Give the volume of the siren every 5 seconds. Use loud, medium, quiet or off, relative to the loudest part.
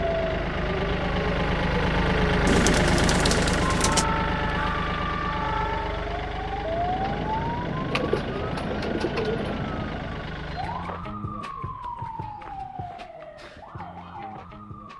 loud, loud, medium.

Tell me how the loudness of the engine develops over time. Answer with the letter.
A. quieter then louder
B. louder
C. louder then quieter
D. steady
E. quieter
E.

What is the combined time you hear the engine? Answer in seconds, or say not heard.
11 s.